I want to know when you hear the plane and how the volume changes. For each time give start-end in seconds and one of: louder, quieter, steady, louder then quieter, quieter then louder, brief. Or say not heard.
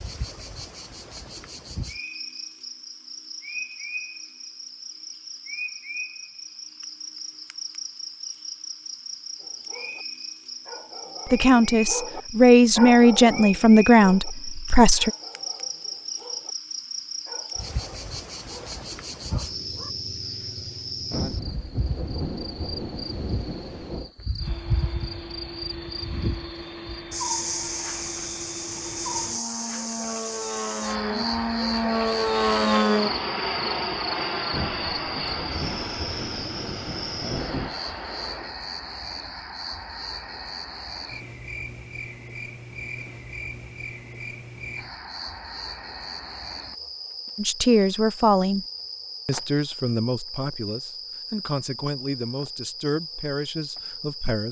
24.4-38.5 louder then quieter.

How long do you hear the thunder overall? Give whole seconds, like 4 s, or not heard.
6 s.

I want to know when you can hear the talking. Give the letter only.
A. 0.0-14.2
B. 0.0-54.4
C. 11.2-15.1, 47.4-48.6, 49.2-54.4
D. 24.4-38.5
C.